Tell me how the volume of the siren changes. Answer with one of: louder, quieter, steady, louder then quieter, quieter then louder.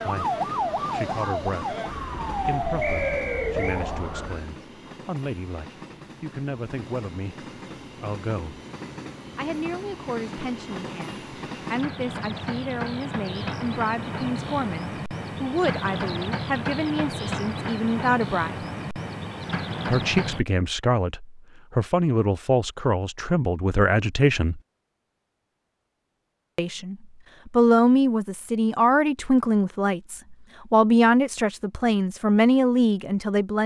steady.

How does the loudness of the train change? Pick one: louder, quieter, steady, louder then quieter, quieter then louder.
louder.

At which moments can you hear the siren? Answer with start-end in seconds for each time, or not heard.
0.0-4.5.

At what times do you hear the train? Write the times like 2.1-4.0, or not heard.
0.0-20.4.